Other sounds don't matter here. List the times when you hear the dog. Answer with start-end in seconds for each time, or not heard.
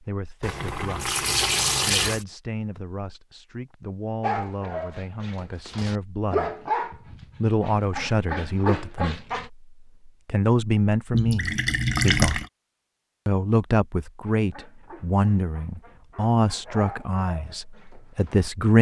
4.2-9.5, 14.2-18.5.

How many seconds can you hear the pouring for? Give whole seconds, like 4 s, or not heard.
3 s.